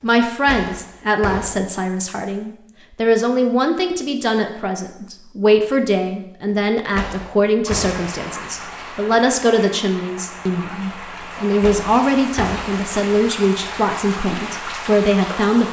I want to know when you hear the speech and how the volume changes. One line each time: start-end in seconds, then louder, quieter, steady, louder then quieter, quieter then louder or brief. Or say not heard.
0.0-15.6 steady.